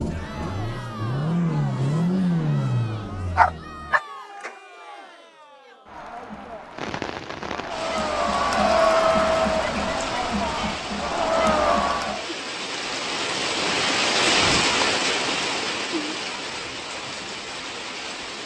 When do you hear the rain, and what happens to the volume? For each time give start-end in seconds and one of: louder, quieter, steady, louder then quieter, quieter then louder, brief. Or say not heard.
6.7-18.4 louder then quieter.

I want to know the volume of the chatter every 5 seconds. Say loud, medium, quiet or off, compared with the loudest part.
quiet, loud, loud, off.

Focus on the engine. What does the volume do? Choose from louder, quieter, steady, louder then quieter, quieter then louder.
louder then quieter.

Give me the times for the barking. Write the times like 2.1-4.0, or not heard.
3.4-4.0.